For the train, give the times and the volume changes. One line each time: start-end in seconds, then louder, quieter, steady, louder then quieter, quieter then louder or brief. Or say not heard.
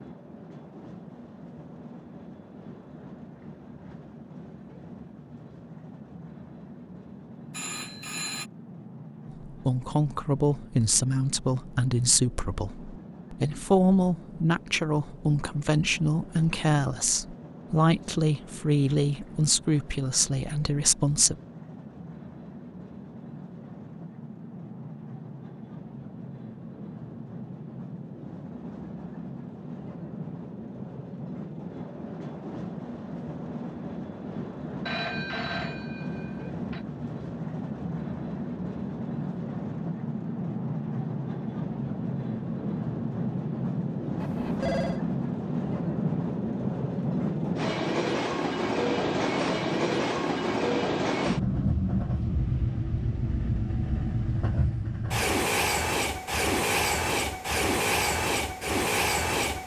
0.0-59.6 louder.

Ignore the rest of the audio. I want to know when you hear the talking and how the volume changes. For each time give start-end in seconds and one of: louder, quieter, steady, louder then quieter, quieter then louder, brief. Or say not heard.
9.4-21.4 steady.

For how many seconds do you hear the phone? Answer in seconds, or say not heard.
4 s.